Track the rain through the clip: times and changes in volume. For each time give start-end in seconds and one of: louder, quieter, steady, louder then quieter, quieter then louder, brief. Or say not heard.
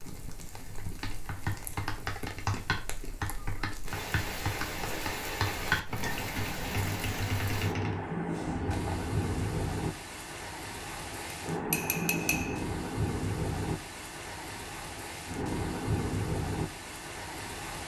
0.0-17.8 louder.